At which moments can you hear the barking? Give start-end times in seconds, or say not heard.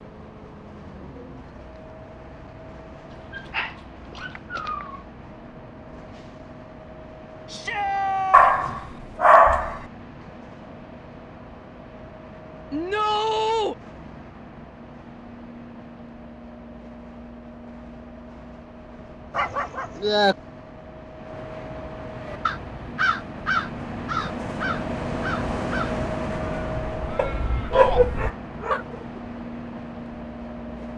3.1-5.0, 8.3-9.8, 19.3-20.4, 27.1-28.8.